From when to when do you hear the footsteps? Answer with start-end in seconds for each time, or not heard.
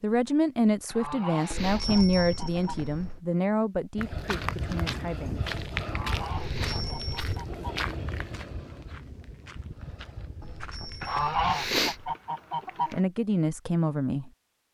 4.0-11.7.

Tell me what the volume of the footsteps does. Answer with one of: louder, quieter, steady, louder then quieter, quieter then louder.
quieter.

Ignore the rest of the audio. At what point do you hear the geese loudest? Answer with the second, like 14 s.
11 s.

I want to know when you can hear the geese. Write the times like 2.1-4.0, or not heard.
0.8-2.9, 5.8-7.7, 11.0-13.0.